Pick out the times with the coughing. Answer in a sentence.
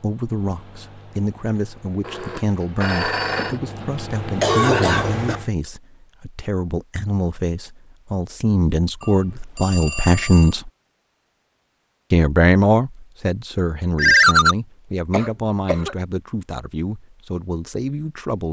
You can hear the coughing from 3.4 to 5.4 s and from 15.1 to 15.9 s.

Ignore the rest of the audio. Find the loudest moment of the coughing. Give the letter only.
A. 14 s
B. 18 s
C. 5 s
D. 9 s
C.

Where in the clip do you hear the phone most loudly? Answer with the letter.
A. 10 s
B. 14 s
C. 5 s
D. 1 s
B.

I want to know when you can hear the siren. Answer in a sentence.
The siren can't be heard in this clip.